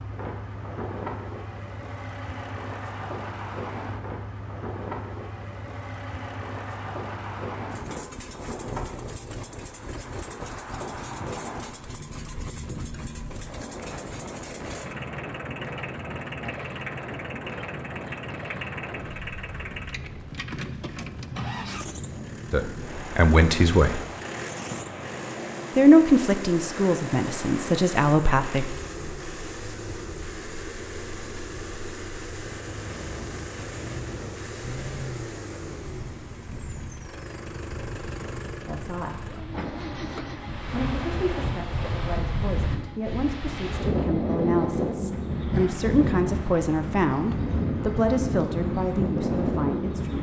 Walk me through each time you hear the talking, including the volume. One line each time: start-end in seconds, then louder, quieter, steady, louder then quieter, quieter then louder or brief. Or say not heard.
22.5-24.0 brief
25.8-28.6 brief
38.6-39.3 brief
40.7-50.1 louder.